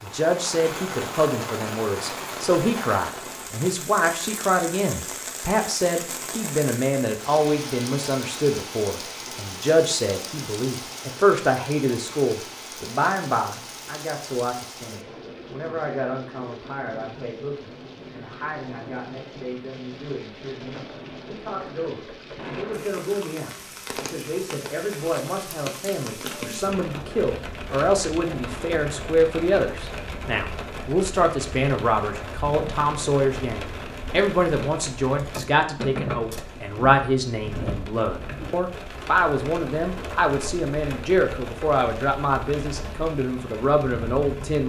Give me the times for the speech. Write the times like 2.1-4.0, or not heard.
0.0-44.6.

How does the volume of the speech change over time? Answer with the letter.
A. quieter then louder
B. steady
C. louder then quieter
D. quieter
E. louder
A.